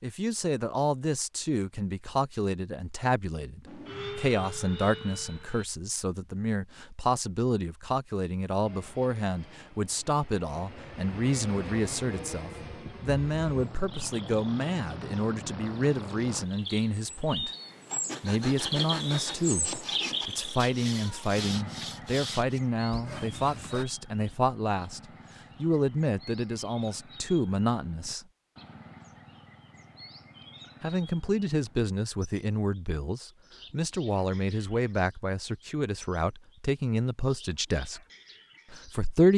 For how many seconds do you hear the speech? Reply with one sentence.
You can hear the speech for 35 seconds altogether.